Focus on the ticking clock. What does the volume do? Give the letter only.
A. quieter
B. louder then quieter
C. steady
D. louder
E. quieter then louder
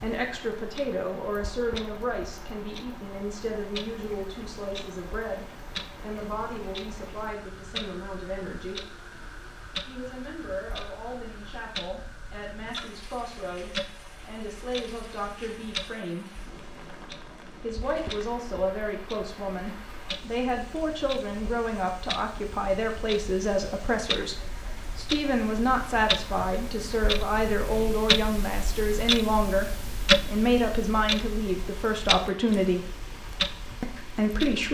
D.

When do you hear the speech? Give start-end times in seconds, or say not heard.
0.0-8.8, 9.8-16.4, 17.6-32.9, 33.8-34.6.